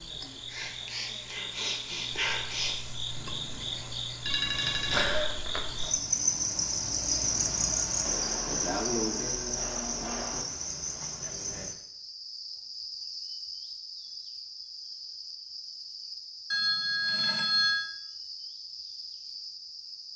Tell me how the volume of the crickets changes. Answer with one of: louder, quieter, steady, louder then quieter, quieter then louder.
louder then quieter.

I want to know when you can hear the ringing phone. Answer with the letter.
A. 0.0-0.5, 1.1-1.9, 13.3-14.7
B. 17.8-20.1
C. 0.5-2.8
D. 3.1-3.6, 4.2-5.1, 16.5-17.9
D.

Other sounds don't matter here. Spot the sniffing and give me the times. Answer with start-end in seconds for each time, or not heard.
0.5-2.8.